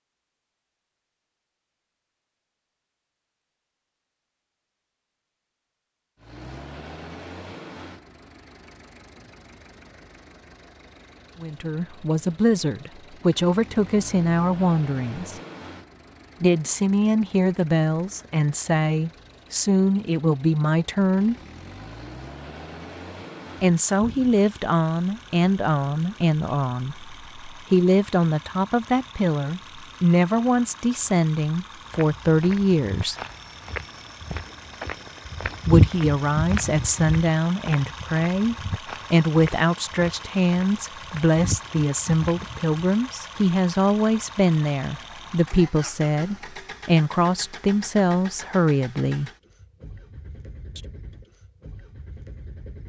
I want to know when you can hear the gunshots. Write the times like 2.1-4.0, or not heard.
not heard.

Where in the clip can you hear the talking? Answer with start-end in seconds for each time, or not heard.
11.4-15.3, 16.4-21.4, 23.6-33.1, 35.6-49.3.